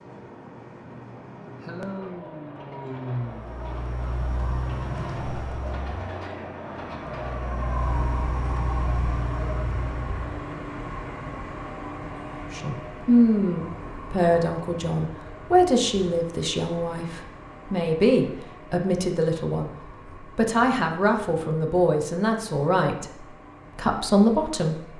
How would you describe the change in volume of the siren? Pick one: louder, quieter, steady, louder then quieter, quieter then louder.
quieter then louder.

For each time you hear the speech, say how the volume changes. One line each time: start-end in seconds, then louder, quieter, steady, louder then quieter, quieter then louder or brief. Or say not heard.
12.5-24.9 steady.